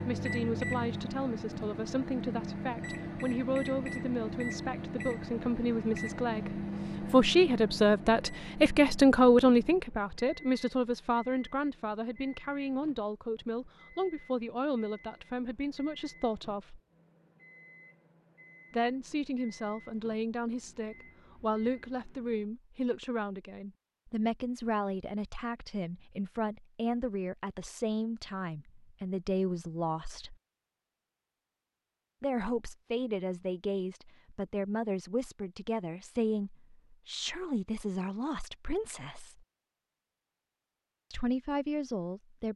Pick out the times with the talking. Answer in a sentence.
You can hear the talking from 0.1 to 16.8 s, from 18.7 to 30.4 s, from 32.2 to 39.4 s and from 41.1 to 42.5 s.